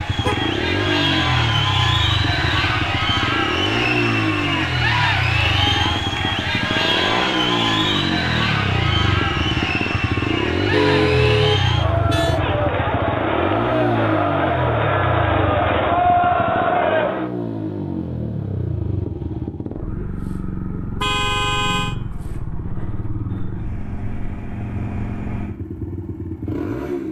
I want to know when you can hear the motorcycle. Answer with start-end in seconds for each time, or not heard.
0.0-27.0.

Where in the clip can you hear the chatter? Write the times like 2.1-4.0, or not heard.
0.0-17.3.